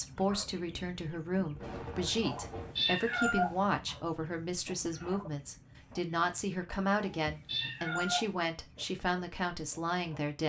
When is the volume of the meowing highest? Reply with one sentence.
The volume of the meowing peaks at 3 seconds.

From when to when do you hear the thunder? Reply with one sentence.
The thunder can be heard from 1.4 to 2.8 s.